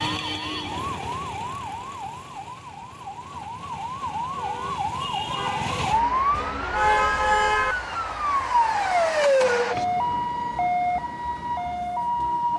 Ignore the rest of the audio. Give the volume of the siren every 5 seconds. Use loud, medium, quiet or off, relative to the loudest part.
medium, loud, loud.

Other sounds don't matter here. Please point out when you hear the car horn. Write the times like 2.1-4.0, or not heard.
6.7-7.8.